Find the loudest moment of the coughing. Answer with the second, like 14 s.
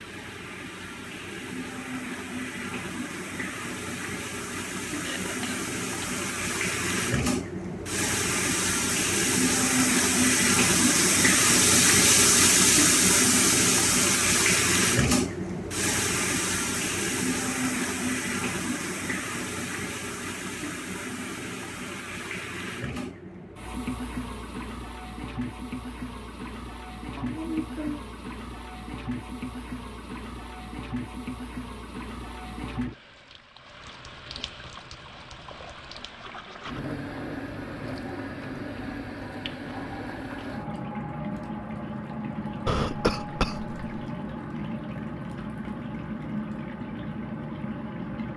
43 s.